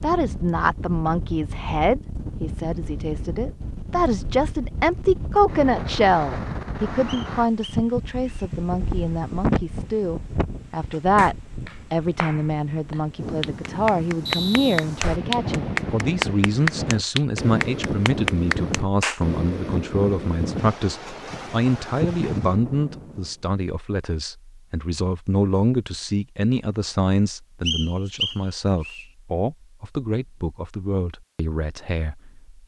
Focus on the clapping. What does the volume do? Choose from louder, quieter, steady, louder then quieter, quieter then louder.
louder.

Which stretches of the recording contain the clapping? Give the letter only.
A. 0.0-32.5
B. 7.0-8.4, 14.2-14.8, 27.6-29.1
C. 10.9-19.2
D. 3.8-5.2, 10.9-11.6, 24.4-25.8
C.